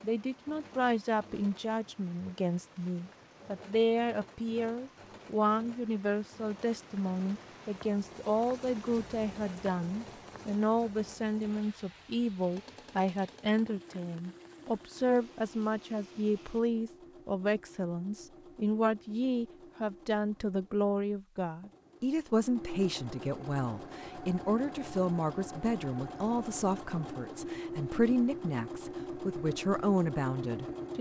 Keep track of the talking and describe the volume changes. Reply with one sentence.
The loudness of the talking stays about the same.